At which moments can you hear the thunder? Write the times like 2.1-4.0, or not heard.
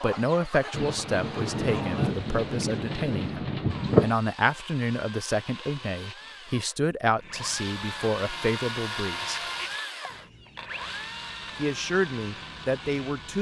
0.7-4.2.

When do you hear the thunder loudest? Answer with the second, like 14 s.
4 s.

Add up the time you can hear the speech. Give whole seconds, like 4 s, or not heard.
11 s.